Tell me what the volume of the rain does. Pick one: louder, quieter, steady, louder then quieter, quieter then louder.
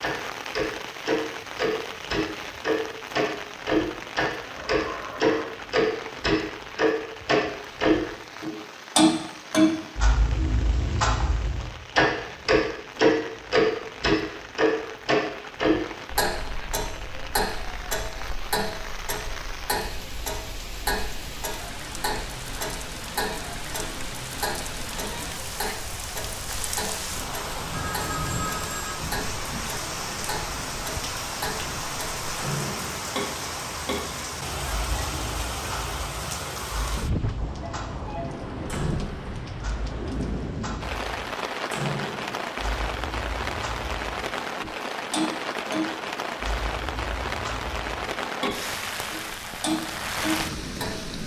louder.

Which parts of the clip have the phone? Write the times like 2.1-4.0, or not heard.
4.5-5.5, 27.6-29.0, 37.6-38.2.